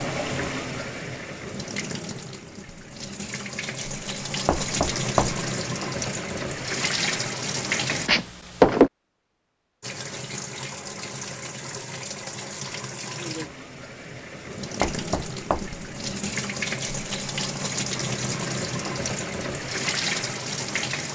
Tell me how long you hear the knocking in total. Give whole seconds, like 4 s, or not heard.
3 s.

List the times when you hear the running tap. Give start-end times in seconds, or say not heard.
0.0-8.1, 9.8-21.1.